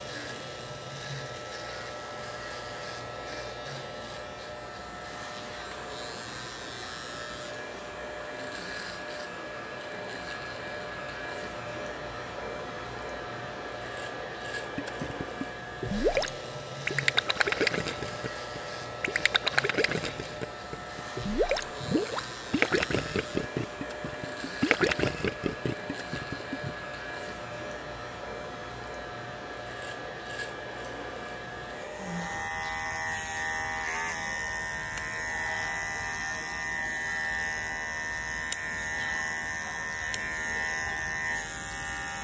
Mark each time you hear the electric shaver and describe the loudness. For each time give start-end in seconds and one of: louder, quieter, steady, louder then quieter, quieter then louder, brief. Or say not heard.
0.0-42.1 louder.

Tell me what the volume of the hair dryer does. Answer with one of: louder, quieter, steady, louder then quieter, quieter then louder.
steady.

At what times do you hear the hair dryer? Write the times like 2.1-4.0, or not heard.
0.0-32.5.